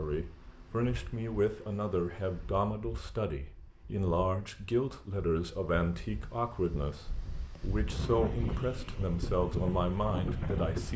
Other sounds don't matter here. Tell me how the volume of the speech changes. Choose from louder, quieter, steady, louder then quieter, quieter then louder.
steady.